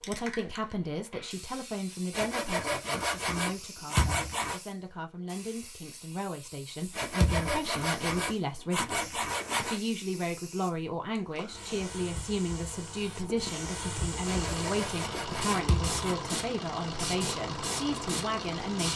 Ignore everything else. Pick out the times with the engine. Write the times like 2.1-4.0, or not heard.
14.2-18.9.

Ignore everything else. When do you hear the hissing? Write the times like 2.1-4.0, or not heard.
0.0-18.9.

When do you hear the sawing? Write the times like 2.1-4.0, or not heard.
2.1-4.6, 6.9-9.8, 14.2-16.1.